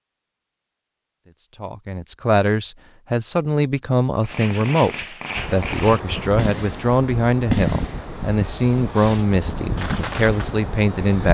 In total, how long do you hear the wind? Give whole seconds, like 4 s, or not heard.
6 s.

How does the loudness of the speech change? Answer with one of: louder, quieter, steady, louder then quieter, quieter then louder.
steady.